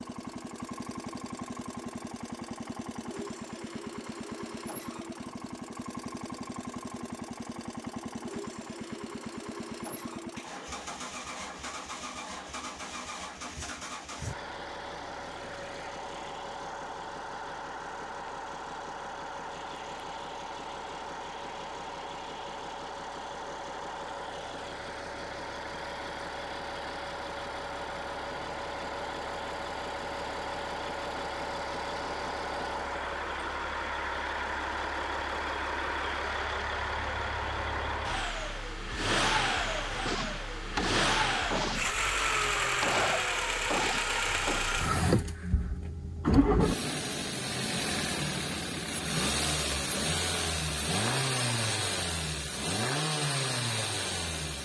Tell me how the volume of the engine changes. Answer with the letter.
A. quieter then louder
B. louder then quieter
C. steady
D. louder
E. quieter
D.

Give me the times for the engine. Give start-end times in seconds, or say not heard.
0.0-54.6.